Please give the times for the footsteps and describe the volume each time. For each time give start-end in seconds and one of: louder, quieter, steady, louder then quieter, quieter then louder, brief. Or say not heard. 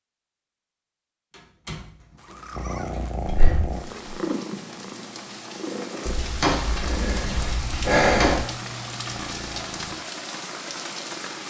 not heard.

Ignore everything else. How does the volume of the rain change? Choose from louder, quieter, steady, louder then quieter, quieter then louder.
louder.